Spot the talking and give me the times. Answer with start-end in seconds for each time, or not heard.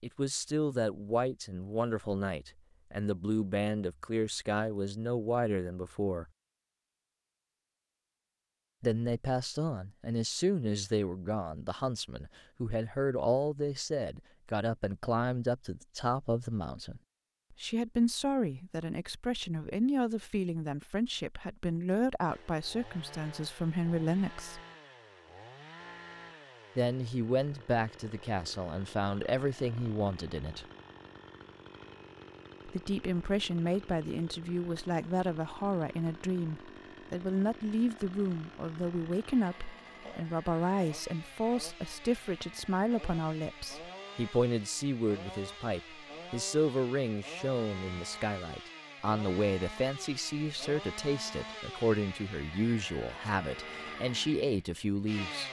0.0-6.2, 8.8-24.6, 26.8-30.6, 32.6-55.4.